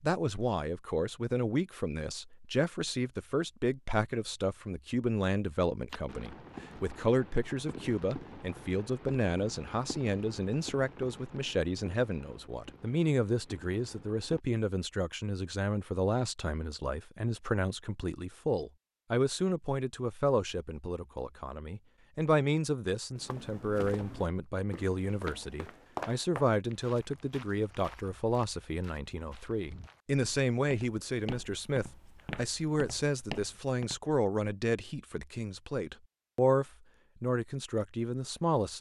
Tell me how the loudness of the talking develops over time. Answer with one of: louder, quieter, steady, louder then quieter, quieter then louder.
steady.